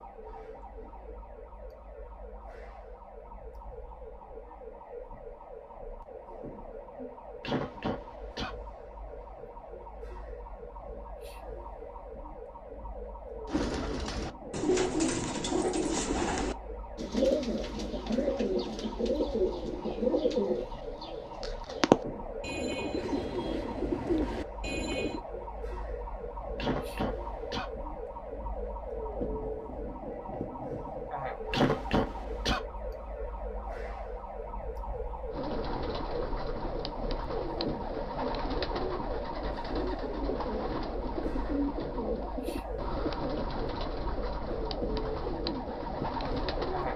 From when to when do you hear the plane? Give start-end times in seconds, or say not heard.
not heard.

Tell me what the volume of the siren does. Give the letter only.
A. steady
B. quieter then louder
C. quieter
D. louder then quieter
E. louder
E.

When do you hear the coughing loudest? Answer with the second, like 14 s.
32 s.